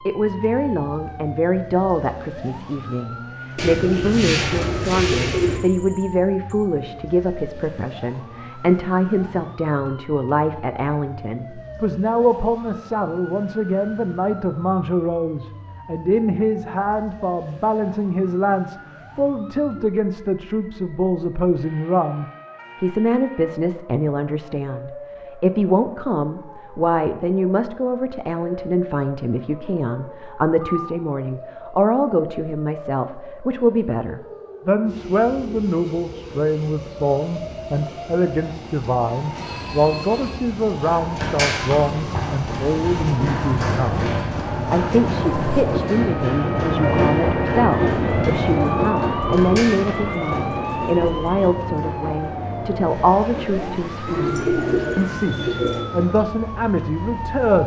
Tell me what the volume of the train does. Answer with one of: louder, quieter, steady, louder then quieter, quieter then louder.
louder then quieter.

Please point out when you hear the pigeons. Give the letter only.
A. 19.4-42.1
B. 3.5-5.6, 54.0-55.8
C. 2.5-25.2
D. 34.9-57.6
B.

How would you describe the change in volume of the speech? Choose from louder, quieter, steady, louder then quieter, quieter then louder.
steady.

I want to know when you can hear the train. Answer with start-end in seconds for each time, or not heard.
34.9-57.6.